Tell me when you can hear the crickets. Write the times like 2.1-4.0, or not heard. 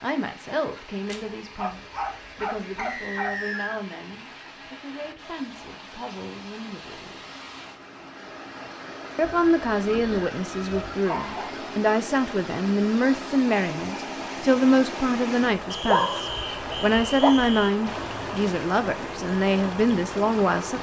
not heard.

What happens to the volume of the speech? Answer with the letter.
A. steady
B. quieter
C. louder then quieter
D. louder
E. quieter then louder
D.